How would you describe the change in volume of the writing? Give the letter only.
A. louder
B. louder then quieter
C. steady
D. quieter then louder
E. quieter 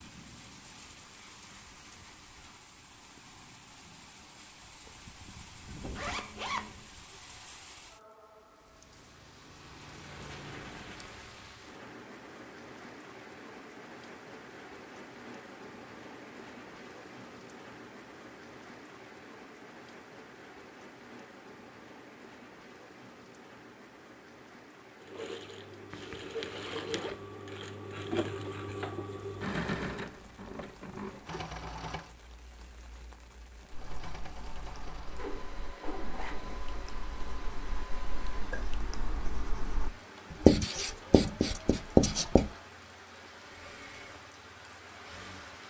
A.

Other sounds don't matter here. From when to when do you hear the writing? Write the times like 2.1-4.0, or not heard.
33.7-42.5.